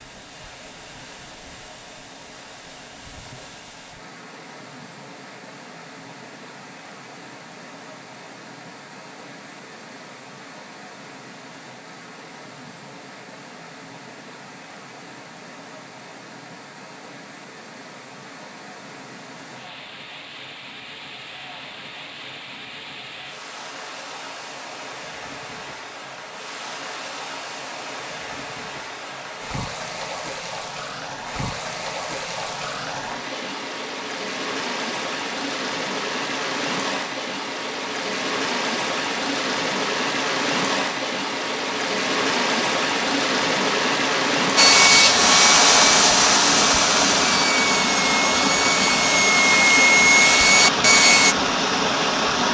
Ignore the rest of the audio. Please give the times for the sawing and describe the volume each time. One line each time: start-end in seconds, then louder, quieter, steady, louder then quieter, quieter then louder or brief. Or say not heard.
44.5-51.4 quieter then louder.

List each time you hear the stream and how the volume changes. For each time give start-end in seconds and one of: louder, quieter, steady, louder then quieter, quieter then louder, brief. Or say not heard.
0.0-52.5 louder.